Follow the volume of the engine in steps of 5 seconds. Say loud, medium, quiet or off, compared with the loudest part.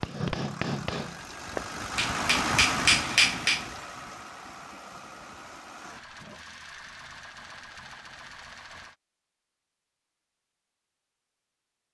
loud, medium, off.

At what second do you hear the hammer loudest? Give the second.
3 s.